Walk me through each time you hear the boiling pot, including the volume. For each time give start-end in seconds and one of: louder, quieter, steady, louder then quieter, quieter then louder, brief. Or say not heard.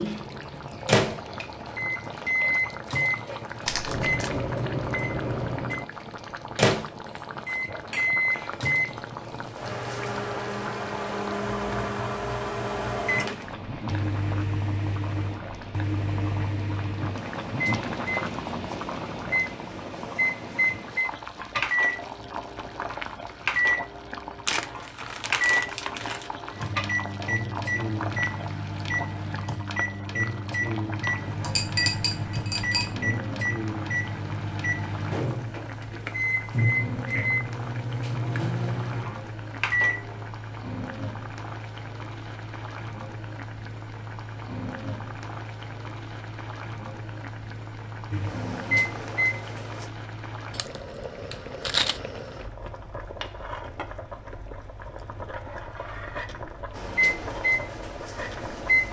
0.0-58.8 steady.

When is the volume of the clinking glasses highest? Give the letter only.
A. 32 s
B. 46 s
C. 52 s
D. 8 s
A.